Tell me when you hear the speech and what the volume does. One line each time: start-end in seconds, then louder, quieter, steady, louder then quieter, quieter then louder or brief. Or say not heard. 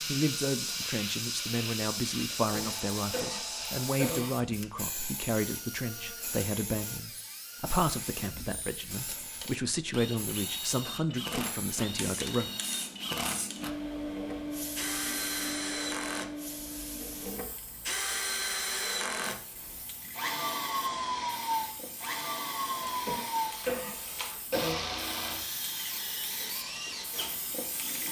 0.0-12.5 steady.